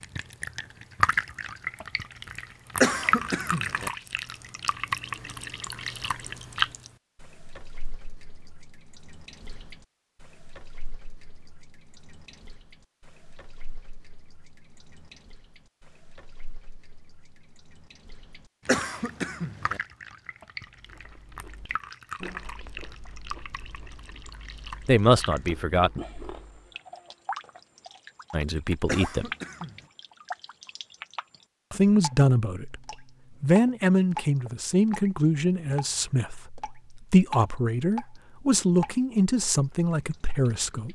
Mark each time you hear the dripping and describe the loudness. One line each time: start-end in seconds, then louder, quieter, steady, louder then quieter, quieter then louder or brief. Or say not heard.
0.0-40.8 quieter then louder.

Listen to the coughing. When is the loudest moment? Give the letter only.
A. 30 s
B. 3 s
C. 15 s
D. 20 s
B.